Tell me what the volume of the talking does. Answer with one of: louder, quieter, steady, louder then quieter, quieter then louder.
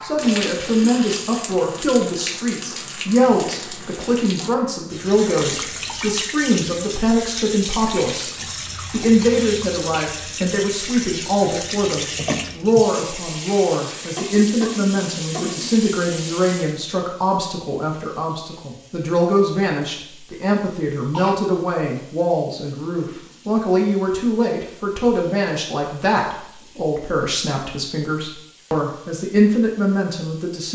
steady.